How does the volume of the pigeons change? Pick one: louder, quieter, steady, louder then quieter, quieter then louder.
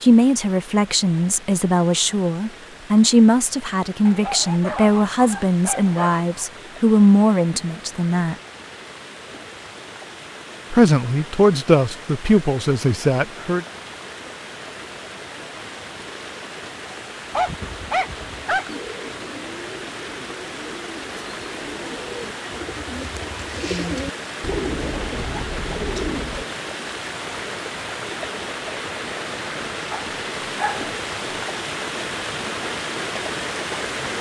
louder.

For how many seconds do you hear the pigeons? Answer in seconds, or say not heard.
9 s.